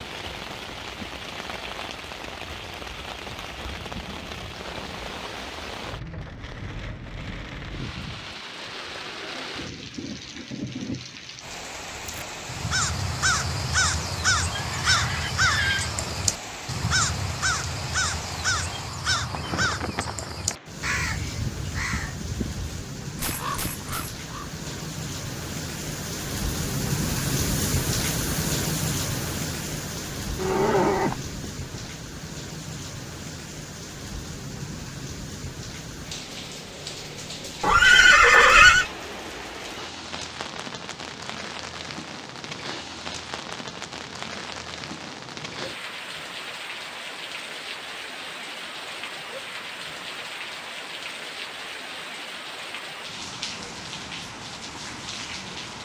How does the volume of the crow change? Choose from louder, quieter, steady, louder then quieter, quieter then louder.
quieter.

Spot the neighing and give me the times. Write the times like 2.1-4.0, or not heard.
14.6-15.9, 29.9-31.9, 37.6-38.9.